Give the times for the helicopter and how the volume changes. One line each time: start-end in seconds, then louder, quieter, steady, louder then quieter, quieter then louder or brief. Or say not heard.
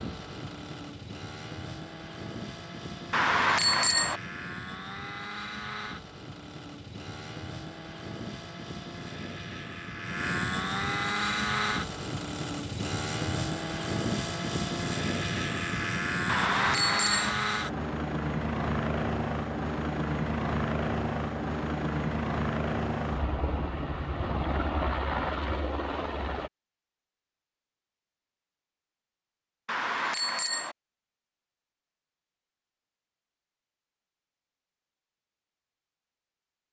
0.0-26.5 louder.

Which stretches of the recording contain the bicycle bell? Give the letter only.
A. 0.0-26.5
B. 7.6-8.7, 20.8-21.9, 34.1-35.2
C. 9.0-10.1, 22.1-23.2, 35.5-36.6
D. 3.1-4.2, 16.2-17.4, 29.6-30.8
D.